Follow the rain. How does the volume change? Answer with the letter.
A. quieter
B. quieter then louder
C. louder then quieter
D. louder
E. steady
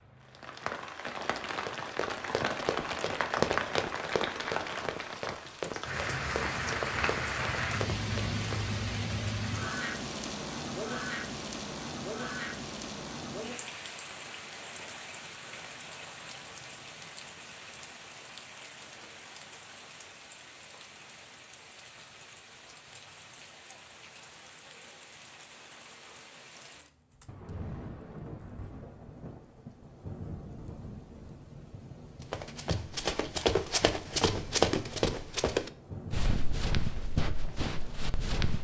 A.